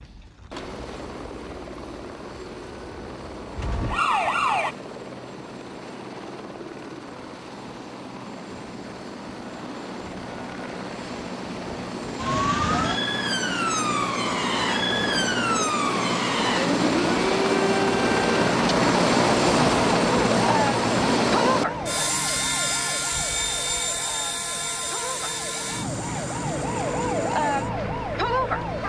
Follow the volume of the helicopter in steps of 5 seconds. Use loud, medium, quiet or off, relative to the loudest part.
quiet, quiet, medium, loud, loud, medium.